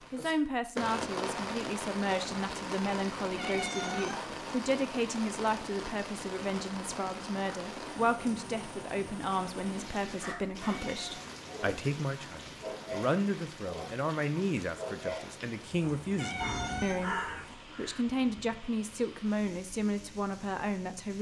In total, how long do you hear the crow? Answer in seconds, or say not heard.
2 s.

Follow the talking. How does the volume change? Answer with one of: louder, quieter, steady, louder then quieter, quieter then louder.
steady.